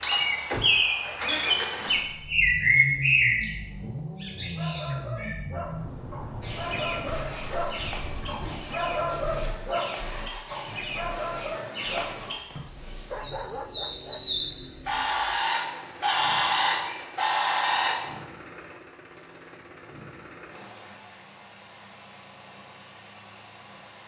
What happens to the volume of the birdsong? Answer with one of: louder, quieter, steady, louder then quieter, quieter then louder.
quieter then louder.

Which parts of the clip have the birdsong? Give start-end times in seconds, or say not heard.
0.0-12.6, 13.2-18.1.